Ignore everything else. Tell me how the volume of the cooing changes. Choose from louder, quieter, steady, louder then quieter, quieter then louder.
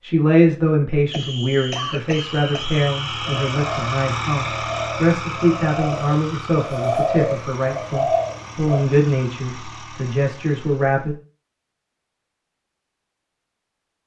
louder.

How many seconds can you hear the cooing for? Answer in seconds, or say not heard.
6 s.